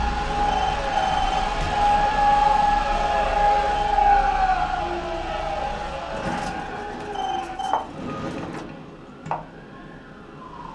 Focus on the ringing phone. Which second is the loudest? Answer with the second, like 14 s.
1 s.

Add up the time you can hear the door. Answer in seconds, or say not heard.
3 s.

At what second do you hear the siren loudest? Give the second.
2 s.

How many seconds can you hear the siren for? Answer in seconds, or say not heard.
11 s.